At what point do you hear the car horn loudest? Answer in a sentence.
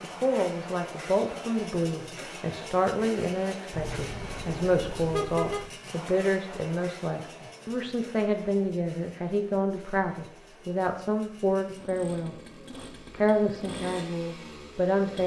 The loudest moment of the car horn is at 5 seconds.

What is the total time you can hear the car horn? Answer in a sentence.
The car horn can be heard for 2 seconds in total.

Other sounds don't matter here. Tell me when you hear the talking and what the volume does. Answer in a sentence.
The talking can be heard from 0.0 to 12.3 s, at a steady volume; and briefly from 13.1 to 15.2 s.